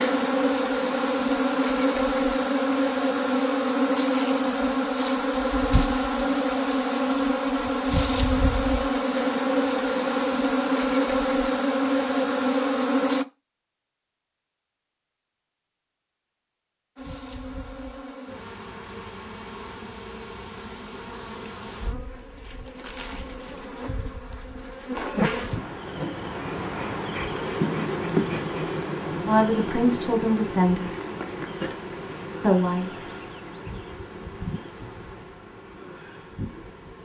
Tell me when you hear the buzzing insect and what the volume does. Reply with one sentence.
The buzzing insect can be heard from 0.0 to 13.2 s, at a steady volume; and from 16.9 to 36.9 s, getting louder then quieter.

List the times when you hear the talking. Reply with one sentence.
You can hear the talking from 29.2 to 30.9 s and from 32.4 to 32.9 s.